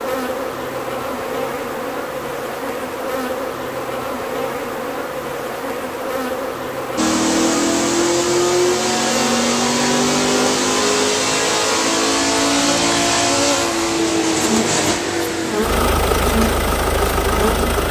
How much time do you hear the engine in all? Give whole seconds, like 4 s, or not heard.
11 s.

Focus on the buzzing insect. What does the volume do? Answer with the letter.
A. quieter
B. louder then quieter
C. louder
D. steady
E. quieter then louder
D.